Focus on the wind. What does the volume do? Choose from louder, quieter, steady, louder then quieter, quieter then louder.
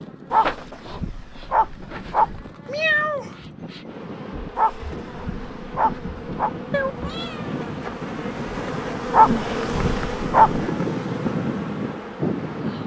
louder.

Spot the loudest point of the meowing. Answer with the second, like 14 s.
3 s.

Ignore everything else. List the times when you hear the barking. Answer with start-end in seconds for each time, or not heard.
0.3-2.5, 4.5-6.5, 9.1-10.6.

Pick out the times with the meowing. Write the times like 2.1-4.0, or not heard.
2.6-3.4, 6.7-7.6.